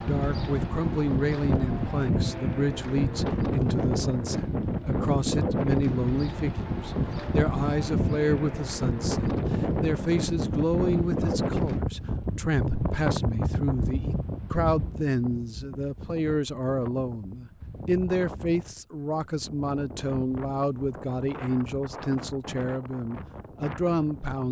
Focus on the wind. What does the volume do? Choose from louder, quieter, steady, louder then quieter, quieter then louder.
quieter.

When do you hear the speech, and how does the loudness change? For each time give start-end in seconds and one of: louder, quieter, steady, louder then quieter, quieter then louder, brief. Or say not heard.
0.1-24.4 steady.